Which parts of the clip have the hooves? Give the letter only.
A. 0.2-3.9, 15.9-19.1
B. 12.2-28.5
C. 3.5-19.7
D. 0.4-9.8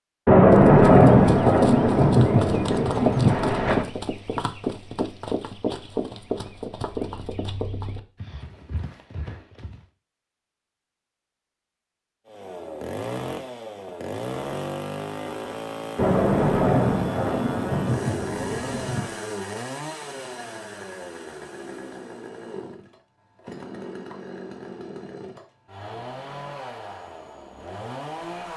D.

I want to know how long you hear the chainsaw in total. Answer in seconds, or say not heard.
16 s.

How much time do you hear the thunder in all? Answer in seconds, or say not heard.
7 s.